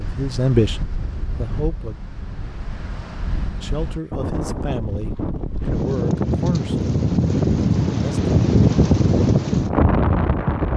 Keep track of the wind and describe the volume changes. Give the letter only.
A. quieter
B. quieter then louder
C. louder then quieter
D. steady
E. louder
E.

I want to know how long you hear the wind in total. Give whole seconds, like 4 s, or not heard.
11 s.